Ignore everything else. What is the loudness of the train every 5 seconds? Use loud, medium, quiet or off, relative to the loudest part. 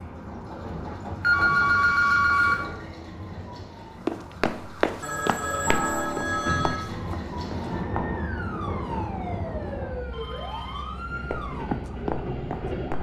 medium, loud, loud.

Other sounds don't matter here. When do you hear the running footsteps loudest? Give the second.
5 s.